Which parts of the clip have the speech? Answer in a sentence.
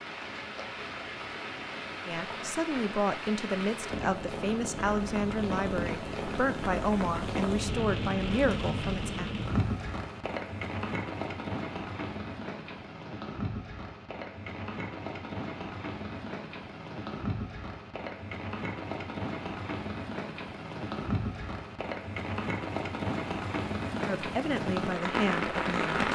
The speech can be heard from 2.0 to 9.3 s and from 24.1 to 26.1 s.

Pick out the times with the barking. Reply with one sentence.
You can't hear the barking here.